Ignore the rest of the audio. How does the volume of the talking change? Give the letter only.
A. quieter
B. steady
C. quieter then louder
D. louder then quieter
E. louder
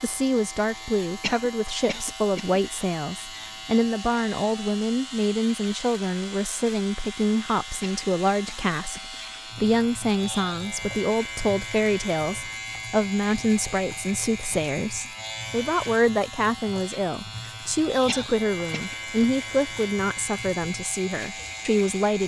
B.